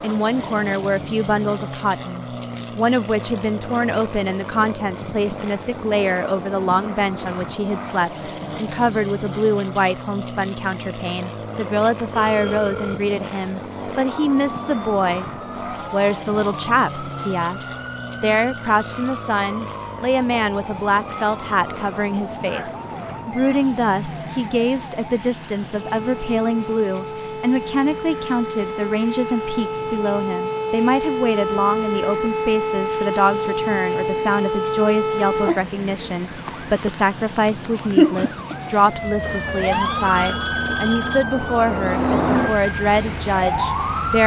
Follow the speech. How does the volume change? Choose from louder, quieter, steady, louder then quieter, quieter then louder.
steady.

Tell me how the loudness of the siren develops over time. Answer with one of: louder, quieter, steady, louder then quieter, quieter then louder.
louder.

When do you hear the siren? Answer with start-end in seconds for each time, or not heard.
14.1-44.2.